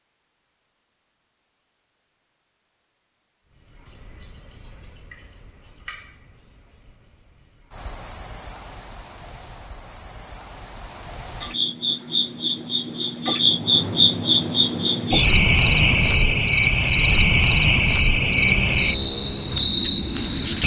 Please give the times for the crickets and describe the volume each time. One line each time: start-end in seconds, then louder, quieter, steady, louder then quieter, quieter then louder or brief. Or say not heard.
3.5-20.6 quieter then louder.